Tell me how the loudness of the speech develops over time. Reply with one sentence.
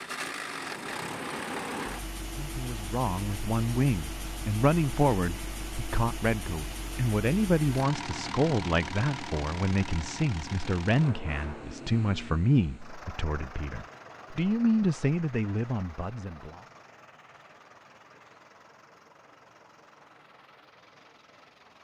The volume of the speech stays about the same.